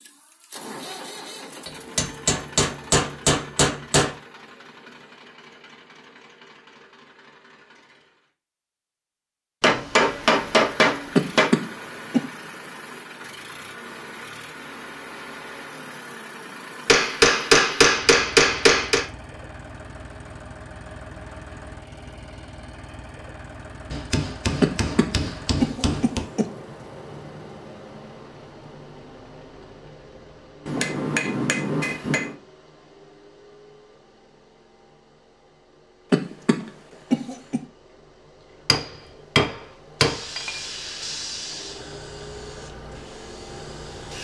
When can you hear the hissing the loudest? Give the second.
41 s.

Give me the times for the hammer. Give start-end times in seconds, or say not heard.
1.6-4.2, 9.6-11.5, 16.9-19.1, 23.9-26.2, 30.6-32.4, 38.6-40.5.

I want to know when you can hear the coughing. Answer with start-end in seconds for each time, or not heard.
11.2-12.2, 24.6-26.4, 36.1-37.6.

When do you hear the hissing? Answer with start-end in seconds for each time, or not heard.
40.0-44.1.